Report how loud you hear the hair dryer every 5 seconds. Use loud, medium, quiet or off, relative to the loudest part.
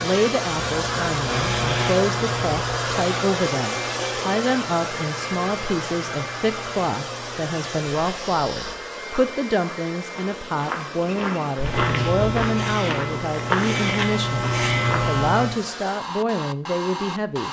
loud, medium, medium, medium.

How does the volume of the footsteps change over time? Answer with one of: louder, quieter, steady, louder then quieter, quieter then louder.
louder.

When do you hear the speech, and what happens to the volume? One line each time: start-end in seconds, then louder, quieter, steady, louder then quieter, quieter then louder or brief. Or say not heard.
0.0-17.4 steady.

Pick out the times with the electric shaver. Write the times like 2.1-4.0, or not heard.
0.0-8.8, 11.6-15.4.